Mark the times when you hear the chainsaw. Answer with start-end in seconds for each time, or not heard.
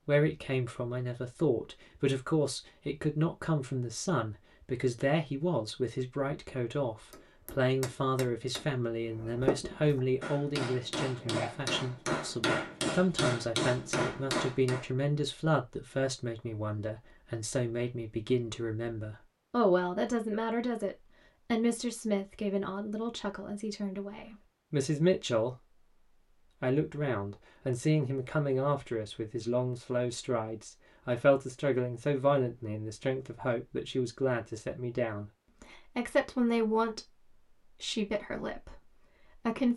not heard.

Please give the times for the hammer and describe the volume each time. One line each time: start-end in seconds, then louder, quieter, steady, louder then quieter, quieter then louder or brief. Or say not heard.
7.1-14.8 louder.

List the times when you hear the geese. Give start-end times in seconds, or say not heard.
not heard.